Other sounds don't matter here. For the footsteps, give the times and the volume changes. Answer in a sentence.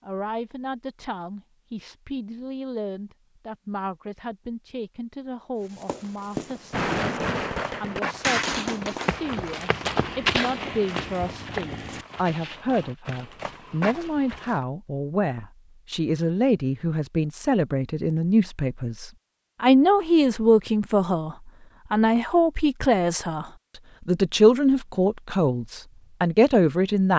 The footsteps can be heard from 5.6 to 14.7 s, getting louder then quieter.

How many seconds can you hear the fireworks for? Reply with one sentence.
You can hear the fireworks for 5 seconds altogether.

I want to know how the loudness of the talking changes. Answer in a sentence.
The volume of the talking goes up.